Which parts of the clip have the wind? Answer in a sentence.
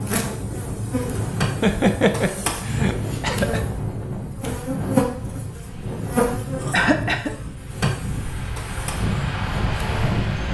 You can hear the wind from 0.0 to 10.4 s.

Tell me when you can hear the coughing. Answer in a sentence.
The coughing can be heard from 1.6 to 3.6 s and from 6.7 to 7.3 s.